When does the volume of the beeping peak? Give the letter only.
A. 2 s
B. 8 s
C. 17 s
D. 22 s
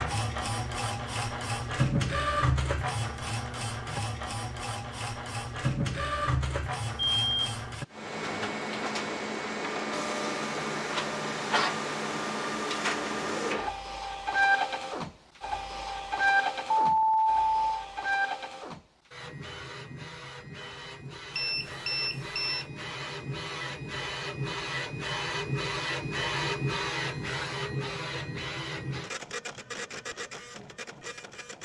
C.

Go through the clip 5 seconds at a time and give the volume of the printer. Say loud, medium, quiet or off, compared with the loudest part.
loud, loud, loud, loud, medium, loud, quiet.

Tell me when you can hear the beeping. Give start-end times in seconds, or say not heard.
7.0-7.5, 16.7-17.8, 21.4-22.6.